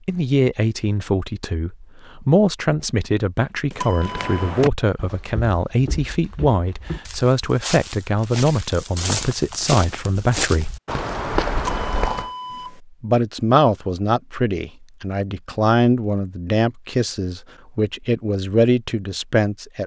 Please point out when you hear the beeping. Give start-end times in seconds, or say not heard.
3.7-4.5, 11.6-12.8.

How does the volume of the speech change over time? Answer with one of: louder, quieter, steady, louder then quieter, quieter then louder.
steady.